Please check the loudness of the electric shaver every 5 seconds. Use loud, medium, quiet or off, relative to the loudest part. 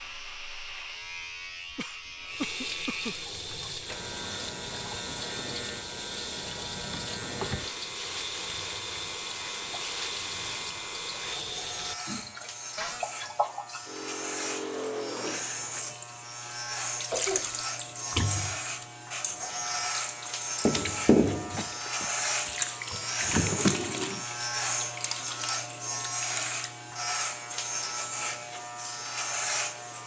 medium, medium, medium, loud, loud, loud.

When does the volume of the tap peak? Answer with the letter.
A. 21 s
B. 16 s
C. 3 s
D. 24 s
A.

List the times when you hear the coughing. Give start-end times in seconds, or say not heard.
1.8-3.1, 17.1-17.6, 21.6-22.6.